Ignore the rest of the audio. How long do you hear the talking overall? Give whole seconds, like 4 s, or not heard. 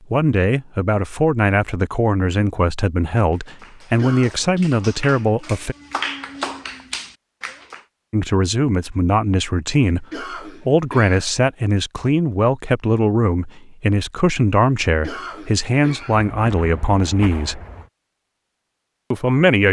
16 s.